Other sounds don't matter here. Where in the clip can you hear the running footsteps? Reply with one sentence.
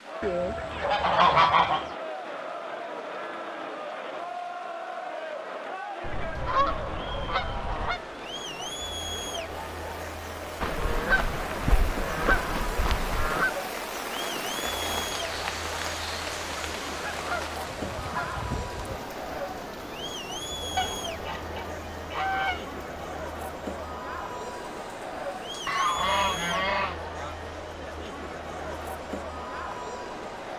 The running footsteps can't be heard in this clip.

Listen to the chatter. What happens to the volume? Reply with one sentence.
The volume of the chatter stays about the same.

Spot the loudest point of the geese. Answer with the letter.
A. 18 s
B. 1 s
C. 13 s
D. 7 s
B.